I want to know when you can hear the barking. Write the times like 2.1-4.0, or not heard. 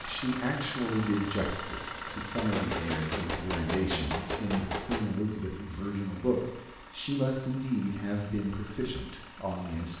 not heard.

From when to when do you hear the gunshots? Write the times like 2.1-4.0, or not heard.
2.4-5.0.